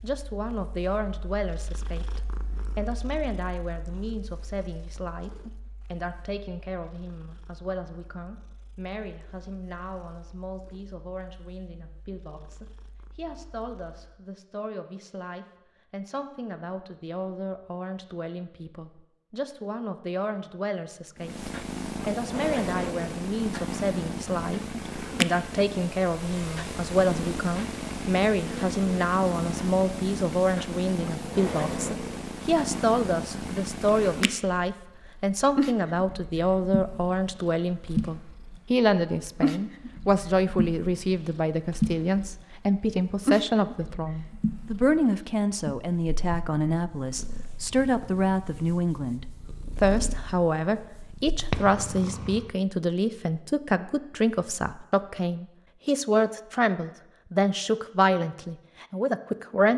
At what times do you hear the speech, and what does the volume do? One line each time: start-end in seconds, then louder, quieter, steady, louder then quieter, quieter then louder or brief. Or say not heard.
0.0-59.7 louder.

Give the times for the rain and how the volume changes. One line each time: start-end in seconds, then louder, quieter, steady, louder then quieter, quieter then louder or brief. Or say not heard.
not heard.